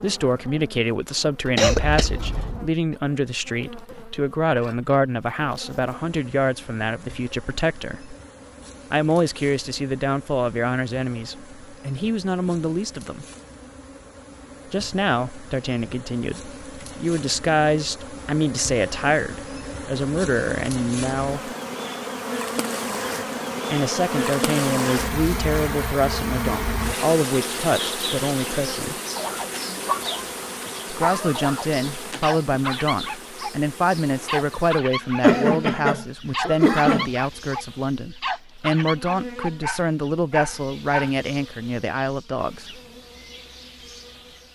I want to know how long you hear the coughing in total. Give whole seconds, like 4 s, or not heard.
3 s.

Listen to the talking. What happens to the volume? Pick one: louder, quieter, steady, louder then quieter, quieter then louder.
steady.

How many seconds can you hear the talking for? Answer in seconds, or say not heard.
36 s.